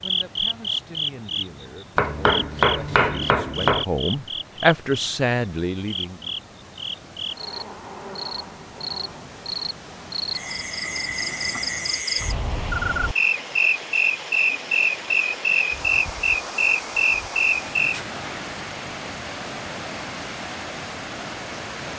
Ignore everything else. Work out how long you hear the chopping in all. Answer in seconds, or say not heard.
2 s.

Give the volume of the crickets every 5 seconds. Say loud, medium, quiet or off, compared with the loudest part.
medium, medium, loud, loud, off.